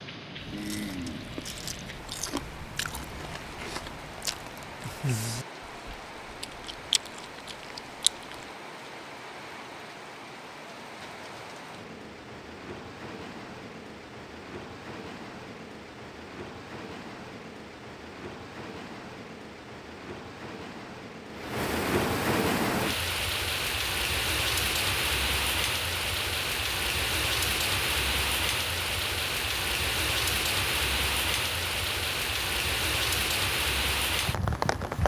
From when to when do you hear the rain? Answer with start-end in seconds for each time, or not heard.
0.0-35.0.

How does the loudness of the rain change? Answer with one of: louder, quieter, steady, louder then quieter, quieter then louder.
louder.